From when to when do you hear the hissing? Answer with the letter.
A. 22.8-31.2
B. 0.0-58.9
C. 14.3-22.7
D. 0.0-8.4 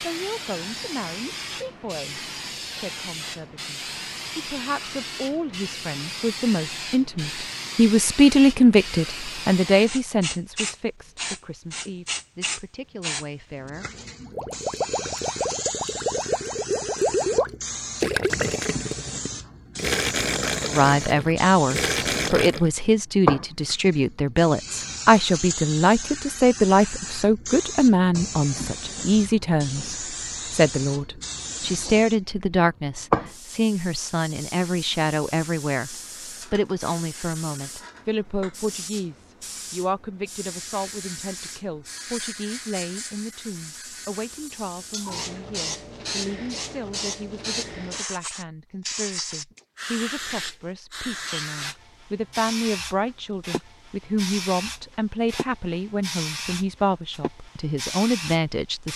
B.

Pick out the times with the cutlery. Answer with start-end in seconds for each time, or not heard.
not heard.